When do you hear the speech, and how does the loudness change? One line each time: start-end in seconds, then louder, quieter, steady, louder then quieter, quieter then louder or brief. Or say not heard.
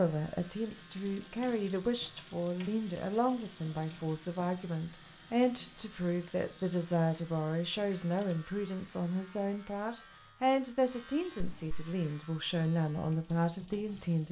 0.0-14.2 steady.